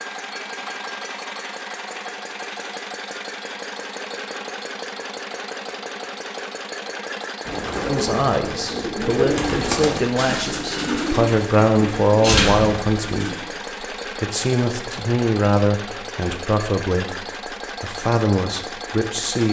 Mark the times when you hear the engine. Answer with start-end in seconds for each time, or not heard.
0.0-19.4.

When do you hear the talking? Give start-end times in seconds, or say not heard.
7.8-13.3, 14.2-19.4.